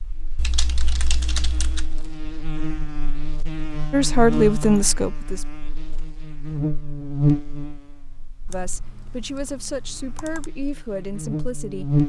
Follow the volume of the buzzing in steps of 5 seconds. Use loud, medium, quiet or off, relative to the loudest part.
medium, loud, loud.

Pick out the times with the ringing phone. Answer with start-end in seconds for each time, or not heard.
not heard.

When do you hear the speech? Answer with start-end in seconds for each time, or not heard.
3.9-5.5, 8.4-11.9.